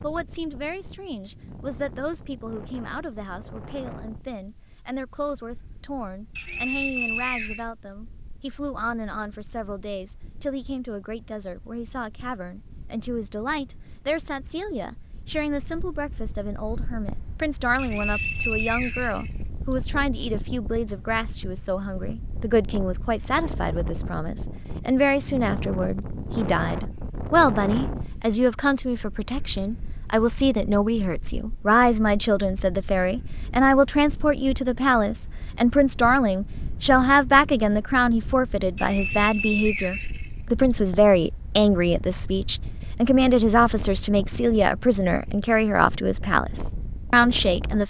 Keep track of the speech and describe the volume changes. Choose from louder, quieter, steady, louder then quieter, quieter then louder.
louder.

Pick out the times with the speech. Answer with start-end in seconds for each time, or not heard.
0.0-47.8.